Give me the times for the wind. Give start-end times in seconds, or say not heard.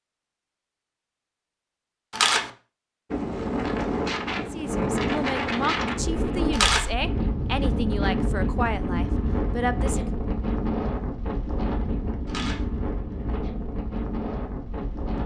3.1-15.2.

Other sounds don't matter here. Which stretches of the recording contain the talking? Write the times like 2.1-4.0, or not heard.
4.5-10.1.